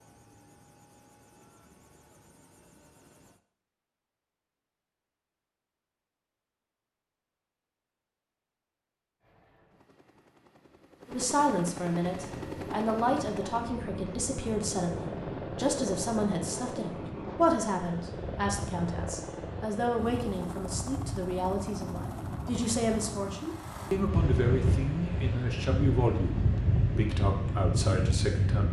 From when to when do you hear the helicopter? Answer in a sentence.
You can hear the helicopter from 0.0 to 3.4 s and from 9.2 to 24.1 s.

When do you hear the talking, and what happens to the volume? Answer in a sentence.
You can hear the talking from 11.1 to 28.6 s, at a steady volume.